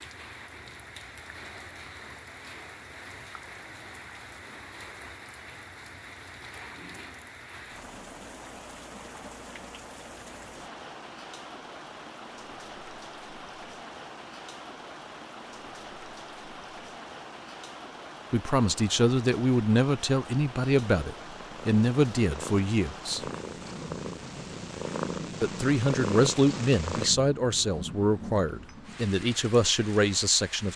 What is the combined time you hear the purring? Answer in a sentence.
You can hear the purring for 6 seconds altogether.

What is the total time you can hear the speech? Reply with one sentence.
The speech can be heard for 10 seconds in total.